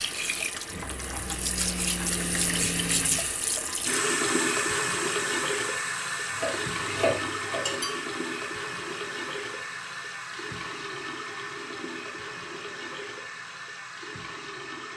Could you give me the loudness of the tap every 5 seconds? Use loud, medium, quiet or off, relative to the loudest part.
loud, loud, medium.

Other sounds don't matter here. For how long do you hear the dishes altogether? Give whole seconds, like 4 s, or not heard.
2 s.